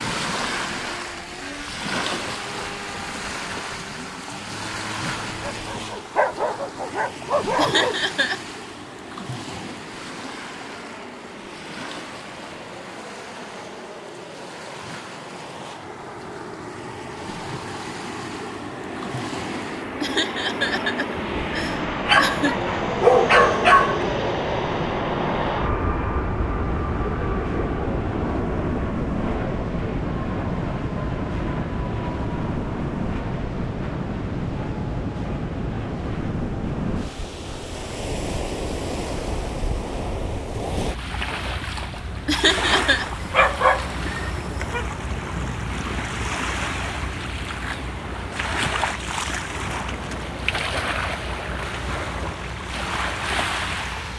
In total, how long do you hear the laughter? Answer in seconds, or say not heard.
4 s.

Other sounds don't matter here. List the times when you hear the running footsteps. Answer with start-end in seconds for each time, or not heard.
not heard.